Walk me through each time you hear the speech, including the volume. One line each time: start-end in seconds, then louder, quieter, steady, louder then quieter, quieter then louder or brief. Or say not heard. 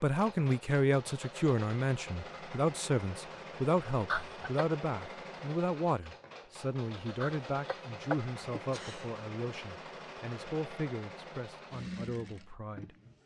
0.0-12.9 quieter.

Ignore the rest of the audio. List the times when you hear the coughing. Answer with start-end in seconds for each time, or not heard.
4.0-4.7, 7.2-9.1.